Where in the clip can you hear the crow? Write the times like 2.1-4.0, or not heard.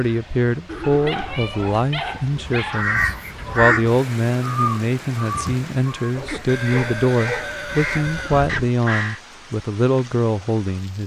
1.4-9.2.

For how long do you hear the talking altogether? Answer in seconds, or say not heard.
11 s.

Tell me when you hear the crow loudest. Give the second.
4 s.